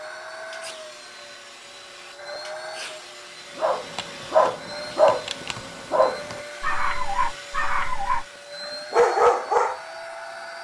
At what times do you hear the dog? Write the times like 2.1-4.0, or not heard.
3.5-8.2, 8.9-9.8.